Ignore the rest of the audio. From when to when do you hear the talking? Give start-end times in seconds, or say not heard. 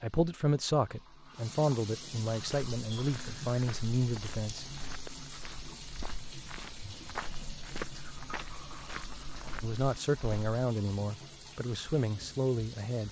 0.0-4.8, 9.6-13.0.